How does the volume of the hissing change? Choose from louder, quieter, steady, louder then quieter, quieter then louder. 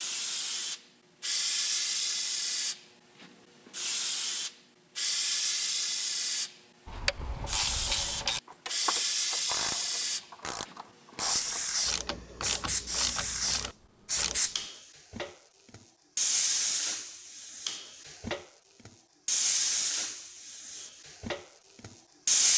steady.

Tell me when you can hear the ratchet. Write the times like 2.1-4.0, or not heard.
6.8-14.4.